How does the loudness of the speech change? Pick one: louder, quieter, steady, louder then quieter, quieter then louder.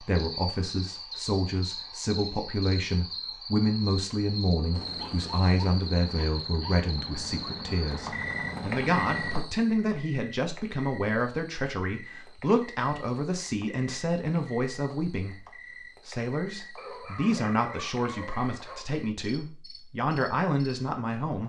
steady.